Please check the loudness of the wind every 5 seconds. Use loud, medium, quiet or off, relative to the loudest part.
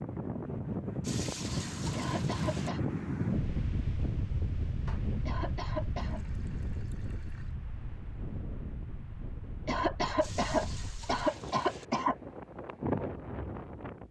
loud, medium, medium.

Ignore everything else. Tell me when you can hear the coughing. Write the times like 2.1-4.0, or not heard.
1.9-2.8, 5.2-6.2, 9.7-12.2.